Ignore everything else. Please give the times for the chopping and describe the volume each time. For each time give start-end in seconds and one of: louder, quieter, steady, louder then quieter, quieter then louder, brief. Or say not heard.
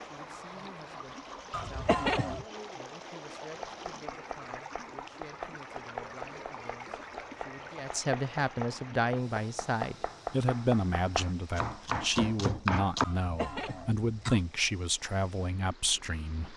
3.5-13.1 louder.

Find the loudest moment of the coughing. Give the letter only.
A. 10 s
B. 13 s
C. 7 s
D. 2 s
D.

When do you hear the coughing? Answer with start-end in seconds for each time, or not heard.
1.5-2.5, 13.0-14.4.